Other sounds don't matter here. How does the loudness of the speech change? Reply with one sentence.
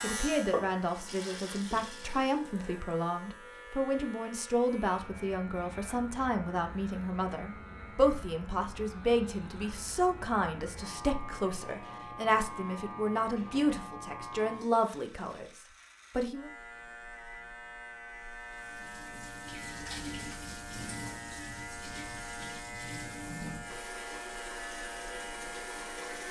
The loudness of the speech stays about the same.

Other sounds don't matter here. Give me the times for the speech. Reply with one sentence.
The speech can be heard from 0.0 to 16.5 s.